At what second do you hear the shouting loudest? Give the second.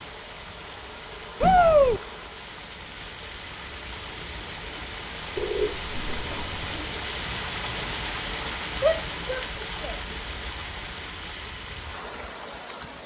2 s.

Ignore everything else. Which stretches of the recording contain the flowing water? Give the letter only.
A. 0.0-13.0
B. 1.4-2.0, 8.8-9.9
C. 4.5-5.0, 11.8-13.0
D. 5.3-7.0
A.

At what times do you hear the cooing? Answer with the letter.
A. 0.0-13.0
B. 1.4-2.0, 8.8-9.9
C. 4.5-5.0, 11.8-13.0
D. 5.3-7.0
D.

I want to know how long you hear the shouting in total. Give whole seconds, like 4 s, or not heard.
2 s.